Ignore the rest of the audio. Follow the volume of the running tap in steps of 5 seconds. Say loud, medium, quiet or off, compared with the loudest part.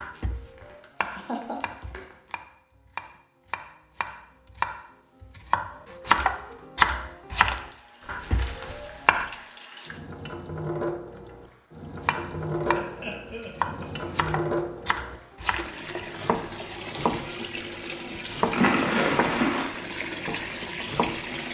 off, quiet, loud, loud, loud.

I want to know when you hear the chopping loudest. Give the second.
7 s.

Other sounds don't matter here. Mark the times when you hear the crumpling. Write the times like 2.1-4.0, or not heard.
0.2-2.4, 8.0-9.2, 18.5-19.6.